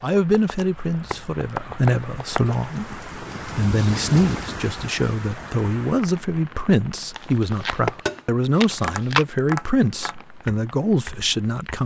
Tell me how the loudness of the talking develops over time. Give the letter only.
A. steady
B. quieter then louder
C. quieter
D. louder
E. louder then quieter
A.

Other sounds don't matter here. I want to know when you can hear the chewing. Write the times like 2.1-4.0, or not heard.
0.4-1.6, 2.2-2.8, 7.1-9.2.